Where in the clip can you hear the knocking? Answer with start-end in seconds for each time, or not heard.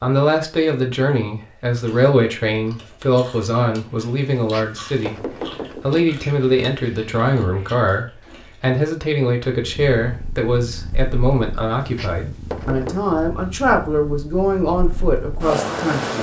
4.3-6.0, 11.8-13.1.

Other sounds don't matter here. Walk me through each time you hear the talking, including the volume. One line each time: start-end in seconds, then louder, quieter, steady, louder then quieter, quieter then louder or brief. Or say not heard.
0.0-16.1 steady.